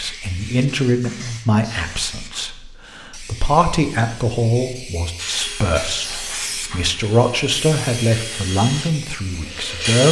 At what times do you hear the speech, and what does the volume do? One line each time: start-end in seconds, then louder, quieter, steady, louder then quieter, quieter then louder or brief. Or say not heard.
0.0-10.0 steady.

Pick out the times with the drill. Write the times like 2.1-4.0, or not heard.
5.2-10.0.